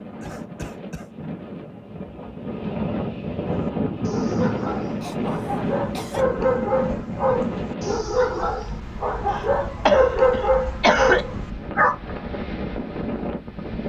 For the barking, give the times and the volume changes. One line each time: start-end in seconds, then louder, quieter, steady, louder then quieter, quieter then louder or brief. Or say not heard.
3.5-11.9 louder.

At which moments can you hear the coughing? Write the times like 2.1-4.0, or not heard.
0.2-1.1, 5.0-6.2, 9.3-11.2.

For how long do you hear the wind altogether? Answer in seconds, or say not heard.
14 s.